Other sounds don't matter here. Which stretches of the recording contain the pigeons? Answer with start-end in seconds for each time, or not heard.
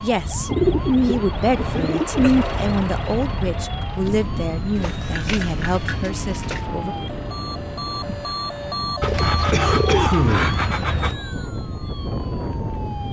0.5-2.5, 4.8-6.7, 9.0-11.2.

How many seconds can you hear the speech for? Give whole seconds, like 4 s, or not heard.
7 s.